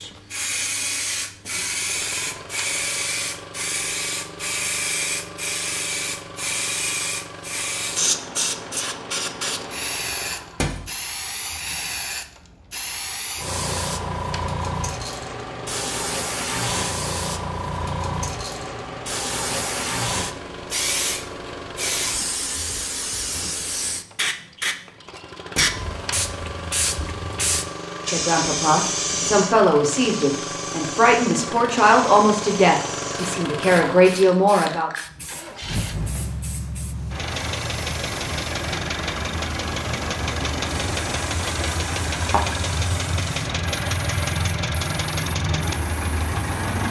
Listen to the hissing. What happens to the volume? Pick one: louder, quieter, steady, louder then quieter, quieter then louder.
quieter.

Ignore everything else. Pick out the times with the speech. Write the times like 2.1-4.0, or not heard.
28.1-34.9.